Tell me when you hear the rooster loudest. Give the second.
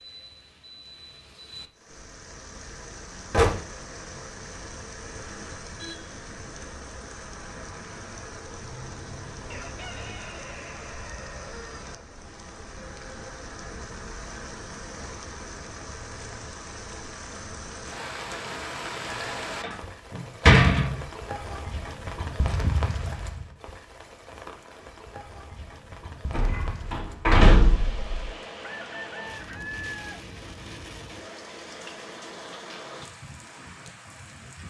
30 s.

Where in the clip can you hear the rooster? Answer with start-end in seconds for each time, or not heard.
9.5-12.2, 28.8-30.2.